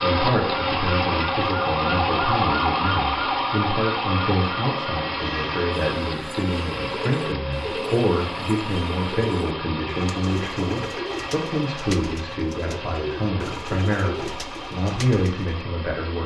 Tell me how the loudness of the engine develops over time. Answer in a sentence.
The volume of the engine goes down.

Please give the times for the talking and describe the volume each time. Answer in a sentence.
The talking can be heard from 0.0 to 16.2 s, at a steady volume.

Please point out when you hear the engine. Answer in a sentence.
The engine can be heard from 0.0 to 16.2 s.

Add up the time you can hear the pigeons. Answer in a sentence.
The pigeons can be heard for 10 seconds in total.